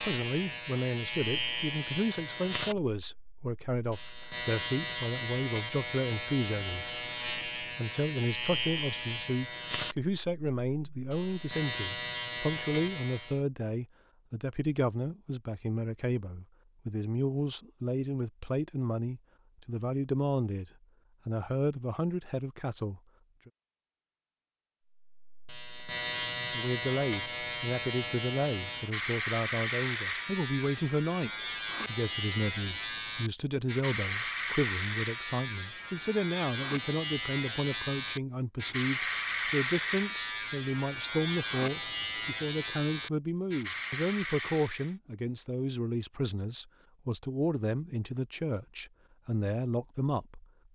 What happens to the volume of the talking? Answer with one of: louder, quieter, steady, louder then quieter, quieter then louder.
steady.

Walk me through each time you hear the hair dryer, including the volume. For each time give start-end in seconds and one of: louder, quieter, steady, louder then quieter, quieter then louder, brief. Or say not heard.
not heard.